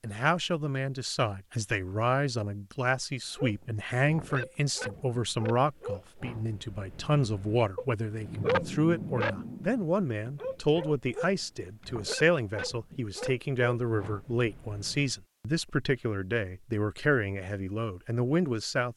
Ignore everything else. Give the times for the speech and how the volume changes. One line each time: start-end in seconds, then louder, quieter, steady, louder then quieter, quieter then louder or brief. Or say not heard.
0.0-18.9 steady.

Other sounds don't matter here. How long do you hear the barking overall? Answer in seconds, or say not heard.
12 s.